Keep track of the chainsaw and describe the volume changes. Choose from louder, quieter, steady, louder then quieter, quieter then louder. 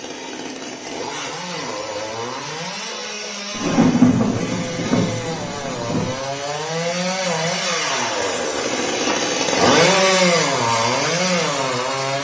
louder.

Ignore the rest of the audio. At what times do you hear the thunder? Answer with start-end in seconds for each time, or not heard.
3.5-6.2.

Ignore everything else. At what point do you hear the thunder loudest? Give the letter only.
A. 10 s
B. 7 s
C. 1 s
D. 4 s
D.